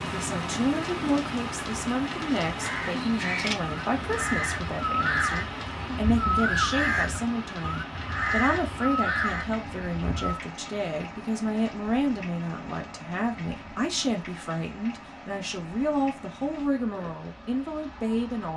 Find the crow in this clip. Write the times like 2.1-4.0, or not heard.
2.5-10.4.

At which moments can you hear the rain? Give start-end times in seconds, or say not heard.
0.0-18.5.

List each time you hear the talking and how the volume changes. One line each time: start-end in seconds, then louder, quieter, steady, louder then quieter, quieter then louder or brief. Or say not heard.
0.0-18.5 steady.